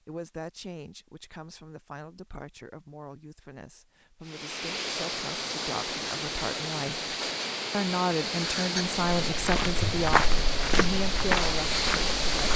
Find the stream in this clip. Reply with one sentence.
The stream can be heard from 4.2 to 12.5 s.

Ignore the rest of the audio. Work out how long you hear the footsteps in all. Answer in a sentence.
You can hear the footsteps for 3 seconds altogether.